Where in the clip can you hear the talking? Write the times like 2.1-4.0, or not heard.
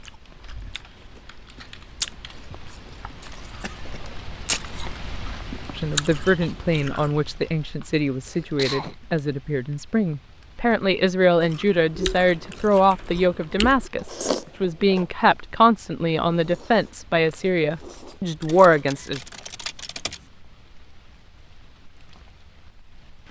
5.8-19.2.